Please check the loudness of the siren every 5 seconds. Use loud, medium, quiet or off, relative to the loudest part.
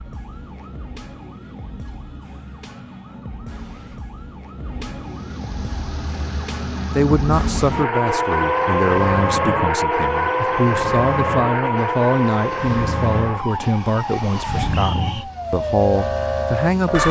quiet, loud, loud, loud.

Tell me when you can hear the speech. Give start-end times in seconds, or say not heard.
6.9-17.0.